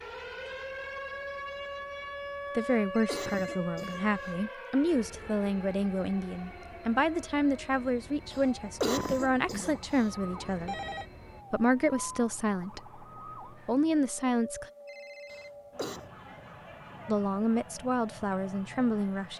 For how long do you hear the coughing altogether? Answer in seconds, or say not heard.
4 s.